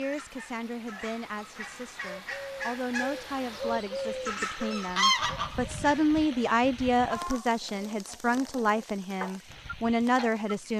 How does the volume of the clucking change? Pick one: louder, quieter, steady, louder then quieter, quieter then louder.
louder then quieter.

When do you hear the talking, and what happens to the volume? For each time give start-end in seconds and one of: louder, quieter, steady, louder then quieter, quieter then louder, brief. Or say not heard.
0.0-10.7 louder.